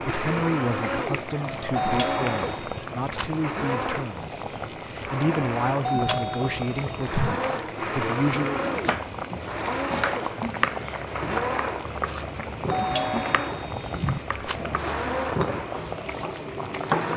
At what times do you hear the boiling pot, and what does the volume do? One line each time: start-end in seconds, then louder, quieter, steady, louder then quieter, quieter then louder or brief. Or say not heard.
0.0-17.1 steady.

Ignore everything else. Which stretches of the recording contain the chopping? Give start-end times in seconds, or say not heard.
8.4-17.1.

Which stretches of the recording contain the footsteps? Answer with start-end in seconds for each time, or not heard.
not heard.